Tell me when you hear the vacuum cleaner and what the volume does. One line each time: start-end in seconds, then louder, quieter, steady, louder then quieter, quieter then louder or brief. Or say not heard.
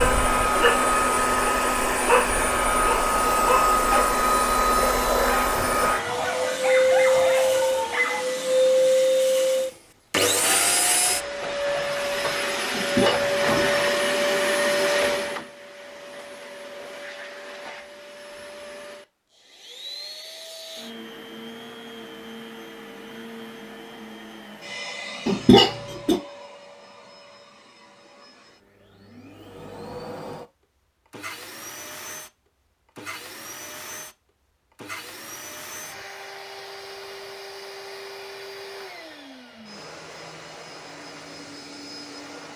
0.0-42.5 quieter.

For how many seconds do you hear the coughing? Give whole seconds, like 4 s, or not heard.
2 s.